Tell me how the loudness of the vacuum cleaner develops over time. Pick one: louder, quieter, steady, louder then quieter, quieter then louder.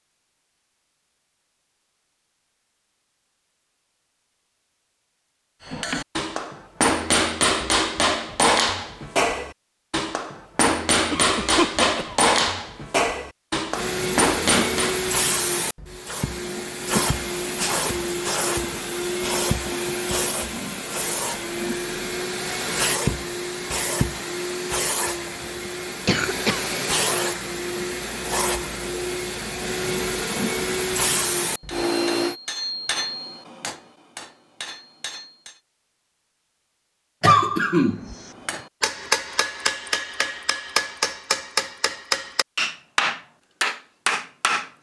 steady.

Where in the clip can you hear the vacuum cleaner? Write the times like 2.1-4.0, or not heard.
13.7-32.4.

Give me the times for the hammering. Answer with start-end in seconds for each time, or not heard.
5.7-15.1, 31.4-35.6, 38.4-44.7.